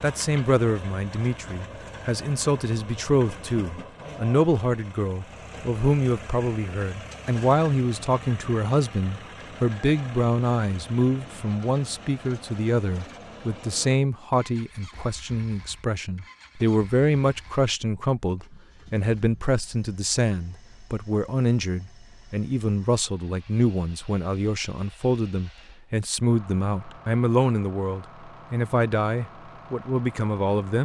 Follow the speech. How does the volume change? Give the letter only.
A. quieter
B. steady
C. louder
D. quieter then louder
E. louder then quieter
B.